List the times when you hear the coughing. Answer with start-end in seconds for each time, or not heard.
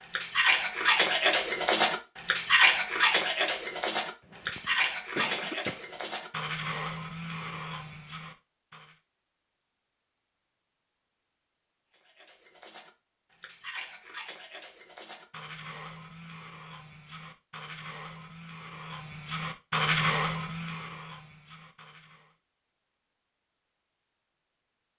4.2-5.8.